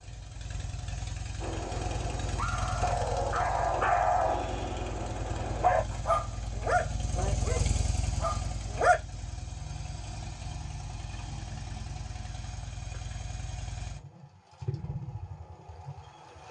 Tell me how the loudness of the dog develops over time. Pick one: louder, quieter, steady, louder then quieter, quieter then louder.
louder then quieter.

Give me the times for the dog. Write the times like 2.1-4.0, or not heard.
1.4-9.0.